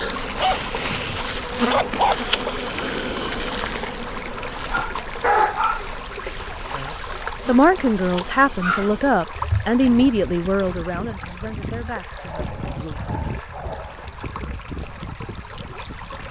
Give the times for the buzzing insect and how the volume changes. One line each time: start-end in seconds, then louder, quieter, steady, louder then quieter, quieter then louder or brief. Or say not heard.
0.0-9.1 quieter.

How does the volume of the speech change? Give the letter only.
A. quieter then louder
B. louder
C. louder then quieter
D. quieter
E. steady
D.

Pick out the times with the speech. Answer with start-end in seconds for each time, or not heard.
6.8-12.9.